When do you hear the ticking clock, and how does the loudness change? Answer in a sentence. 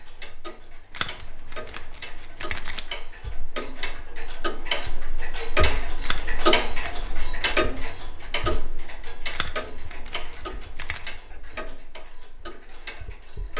You can hear the ticking clock from 0.0 to 13.5 s, getting louder then quieter.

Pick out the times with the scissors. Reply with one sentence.
The scissors can be heard from 0.9 to 2.8 s, from 6.0 to 7.2 s and from 9.3 to 11.1 s.